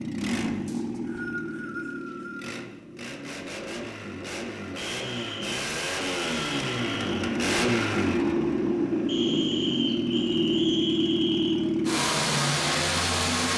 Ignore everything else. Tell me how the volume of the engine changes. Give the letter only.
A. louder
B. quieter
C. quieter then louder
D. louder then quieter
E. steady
A.